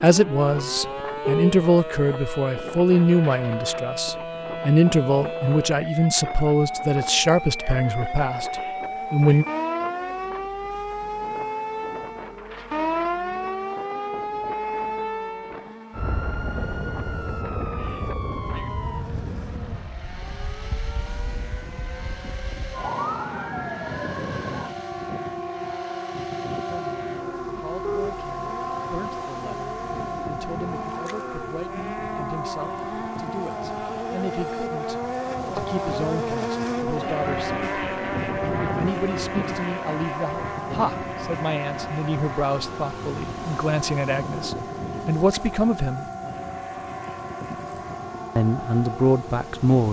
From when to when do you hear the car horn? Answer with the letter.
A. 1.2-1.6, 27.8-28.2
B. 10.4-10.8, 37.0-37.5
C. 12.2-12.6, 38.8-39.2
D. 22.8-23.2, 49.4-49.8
A.